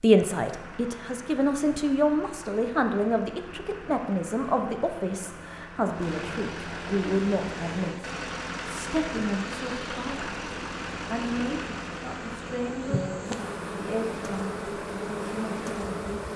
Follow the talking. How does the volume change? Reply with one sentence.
The loudness of the talking goes down.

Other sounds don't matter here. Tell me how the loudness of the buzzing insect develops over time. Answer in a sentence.
The volume of the buzzing insect goes up.